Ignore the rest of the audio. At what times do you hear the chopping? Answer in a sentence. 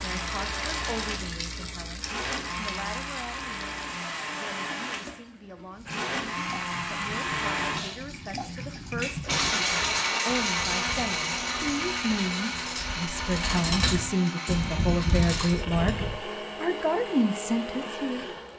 The chopping can't be heard in this clip.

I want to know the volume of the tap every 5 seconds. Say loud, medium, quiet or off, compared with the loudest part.
loud, loud, off, off.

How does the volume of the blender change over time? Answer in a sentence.
The loudness of the blender goes up, then down.